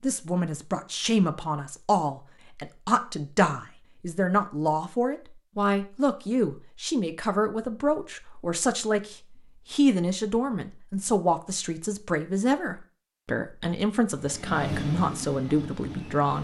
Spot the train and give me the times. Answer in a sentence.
You can hear the train from 14.1 to 16.3 s.